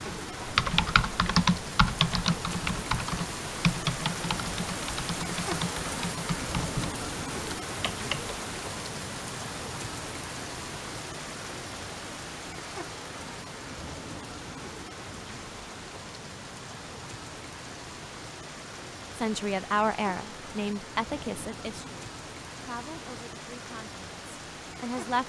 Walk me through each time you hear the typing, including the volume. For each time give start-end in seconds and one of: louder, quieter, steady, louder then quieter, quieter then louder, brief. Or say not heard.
0.1-8.3 quieter.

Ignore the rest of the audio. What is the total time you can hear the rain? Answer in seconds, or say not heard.
25 s.